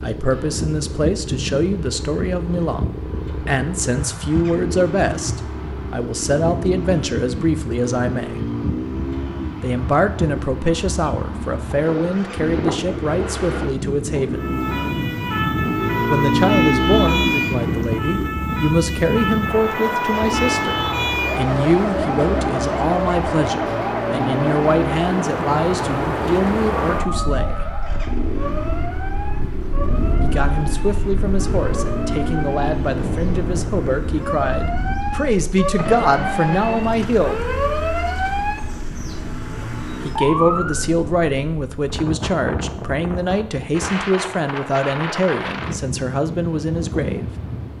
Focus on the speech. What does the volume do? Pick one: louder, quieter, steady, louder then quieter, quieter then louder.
steady.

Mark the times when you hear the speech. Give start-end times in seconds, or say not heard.
0.0-8.4, 9.6-14.5, 16.1-27.6, 30.2-37.5, 40.0-47.3.